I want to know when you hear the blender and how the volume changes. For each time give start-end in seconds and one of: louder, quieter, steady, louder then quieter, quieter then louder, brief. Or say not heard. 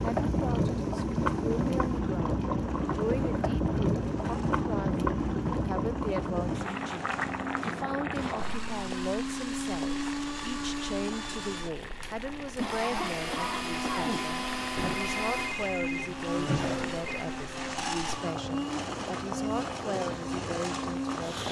0.0-21.4 louder.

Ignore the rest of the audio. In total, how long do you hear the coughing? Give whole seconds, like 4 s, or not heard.
2 s.